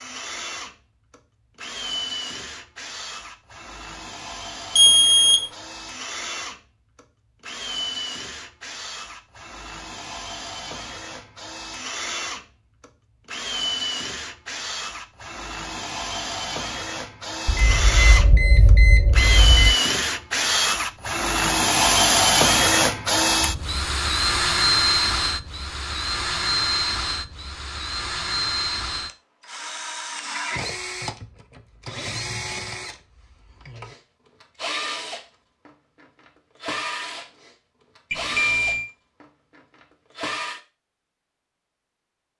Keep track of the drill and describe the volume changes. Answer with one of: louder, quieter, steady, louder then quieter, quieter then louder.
louder then quieter.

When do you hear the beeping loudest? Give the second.
5 s.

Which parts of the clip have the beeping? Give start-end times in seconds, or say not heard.
4.8-5.4, 17.4-19.8, 38.1-38.9.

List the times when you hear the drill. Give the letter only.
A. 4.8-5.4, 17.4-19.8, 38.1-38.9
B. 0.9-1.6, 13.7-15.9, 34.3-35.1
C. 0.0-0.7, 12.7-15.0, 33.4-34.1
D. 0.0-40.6
D.